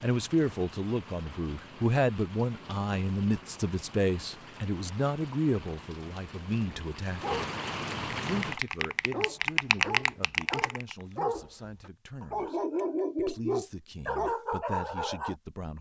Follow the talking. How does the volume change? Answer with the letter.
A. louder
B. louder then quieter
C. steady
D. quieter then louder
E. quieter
E.